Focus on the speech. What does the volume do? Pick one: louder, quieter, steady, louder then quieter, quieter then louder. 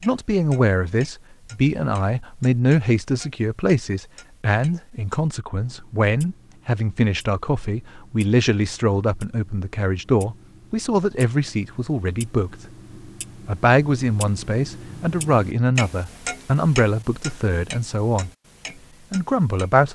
steady.